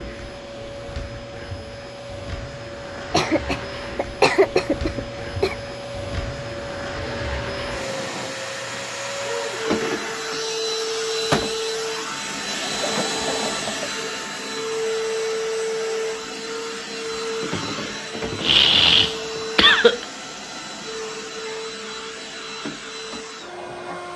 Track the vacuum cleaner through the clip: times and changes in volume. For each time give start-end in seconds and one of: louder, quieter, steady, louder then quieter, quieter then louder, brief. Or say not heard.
0.0-24.1 louder then quieter.